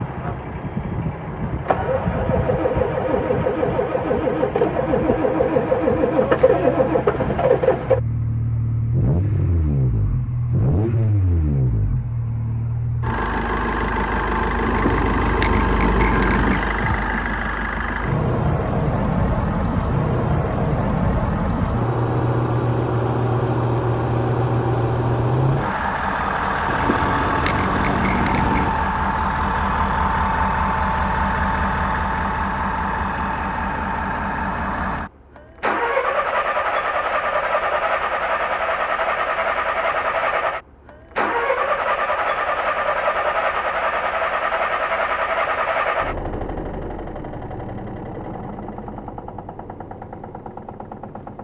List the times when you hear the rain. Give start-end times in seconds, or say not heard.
not heard.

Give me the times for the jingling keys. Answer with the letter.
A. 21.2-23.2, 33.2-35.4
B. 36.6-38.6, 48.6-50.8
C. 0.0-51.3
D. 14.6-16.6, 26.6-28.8
D.